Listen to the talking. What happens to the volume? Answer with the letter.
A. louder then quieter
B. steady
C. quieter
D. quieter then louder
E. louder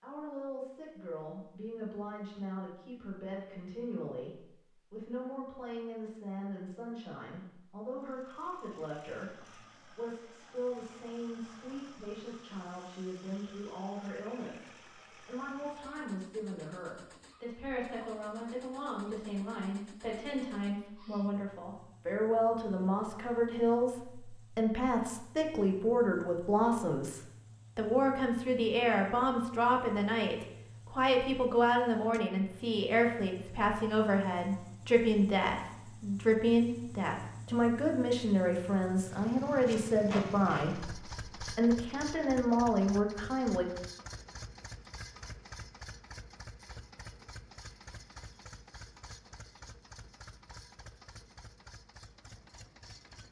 E.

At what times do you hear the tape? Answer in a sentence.
The tape can be heard from 39.6 to 40.6 s.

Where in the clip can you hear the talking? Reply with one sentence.
The talking can be heard from 0.0 to 43.6 s.